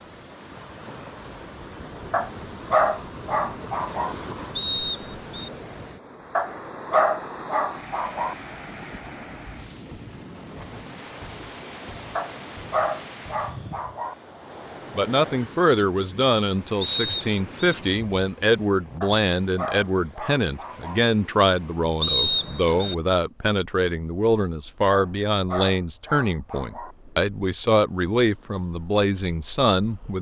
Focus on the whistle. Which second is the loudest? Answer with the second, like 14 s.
22 s.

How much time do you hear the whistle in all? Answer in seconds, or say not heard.
3 s.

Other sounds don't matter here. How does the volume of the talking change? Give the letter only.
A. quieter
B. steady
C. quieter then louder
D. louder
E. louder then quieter
B.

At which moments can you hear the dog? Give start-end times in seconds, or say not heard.
2.1-4.2, 6.3-8.3, 12.2-14.2, 19.0-21.0, 24.9-26.9.